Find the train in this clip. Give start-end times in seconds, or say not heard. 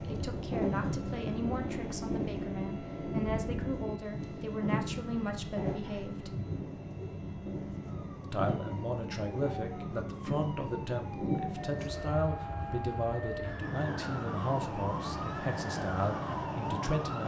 0.0-17.2.